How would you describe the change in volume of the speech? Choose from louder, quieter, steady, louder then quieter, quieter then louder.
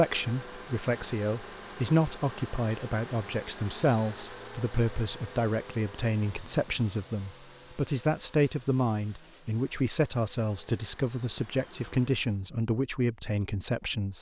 steady.